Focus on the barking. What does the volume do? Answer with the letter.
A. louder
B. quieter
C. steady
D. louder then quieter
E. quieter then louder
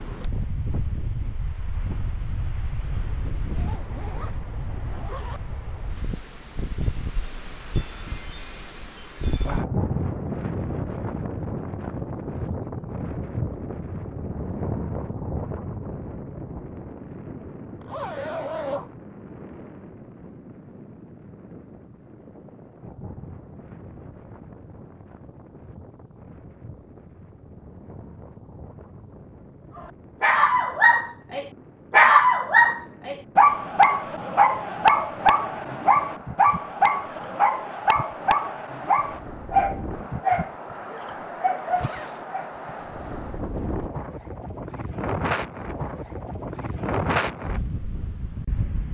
B.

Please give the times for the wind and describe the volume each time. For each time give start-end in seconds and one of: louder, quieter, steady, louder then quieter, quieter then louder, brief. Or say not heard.
0.0-48.8 quieter then louder.